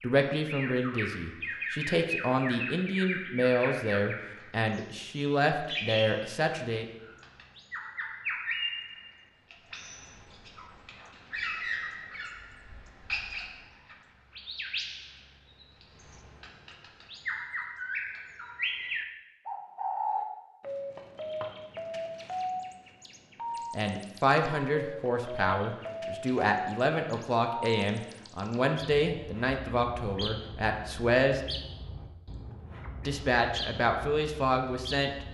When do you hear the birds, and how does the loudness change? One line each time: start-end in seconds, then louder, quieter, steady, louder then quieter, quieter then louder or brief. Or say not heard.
0.0-35.3 quieter.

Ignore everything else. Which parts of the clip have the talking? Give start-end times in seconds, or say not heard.
0.0-6.8, 23.8-31.4, 33.0-35.2.